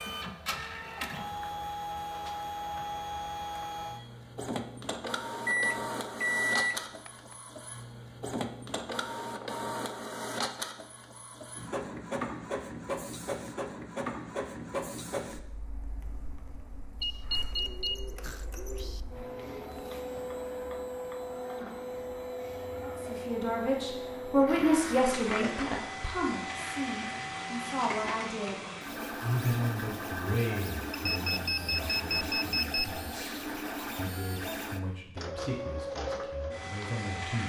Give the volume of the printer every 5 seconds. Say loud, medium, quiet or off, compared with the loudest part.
loud, loud, loud, medium, loud, loud, loud, loud.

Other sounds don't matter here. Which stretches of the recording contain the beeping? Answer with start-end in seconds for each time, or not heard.
5.5-7.1, 17.0-19.0, 30.9-32.9.